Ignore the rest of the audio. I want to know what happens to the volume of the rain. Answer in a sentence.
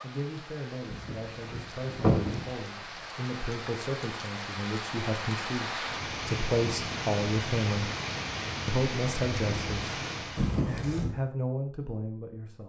The loudness of the rain goes up.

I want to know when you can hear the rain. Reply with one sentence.
The rain can be heard from 0.0 to 10.7 s.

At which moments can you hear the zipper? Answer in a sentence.
You can hear the zipper from 0.8 to 2.5 s and from 10.3 to 11.1 s.